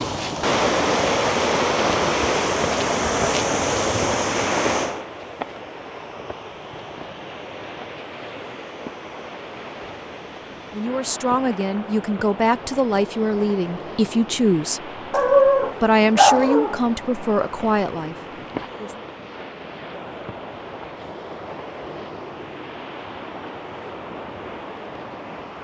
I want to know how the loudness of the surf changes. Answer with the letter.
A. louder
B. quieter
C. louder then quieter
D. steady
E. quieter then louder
B.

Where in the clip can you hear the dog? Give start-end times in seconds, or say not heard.
15.1-16.8.